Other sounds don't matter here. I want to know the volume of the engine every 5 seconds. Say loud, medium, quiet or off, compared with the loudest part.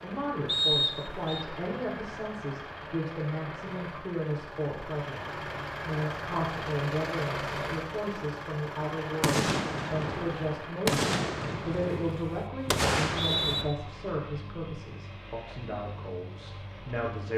medium, loud, medium, medium.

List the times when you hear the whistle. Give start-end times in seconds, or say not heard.
0.5-1.4, 13.1-13.7.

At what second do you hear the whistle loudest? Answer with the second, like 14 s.
1 s.